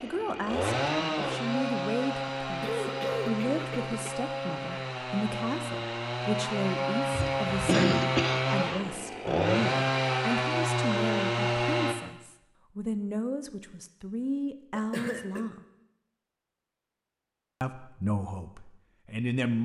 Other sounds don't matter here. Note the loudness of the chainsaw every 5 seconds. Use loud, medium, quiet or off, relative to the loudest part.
medium, loud, loud, off.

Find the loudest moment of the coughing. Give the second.
8 s.